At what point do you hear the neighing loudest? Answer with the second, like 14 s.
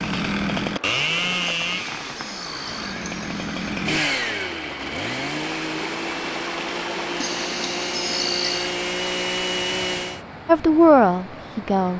8 s.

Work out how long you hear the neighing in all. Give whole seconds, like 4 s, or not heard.
4 s.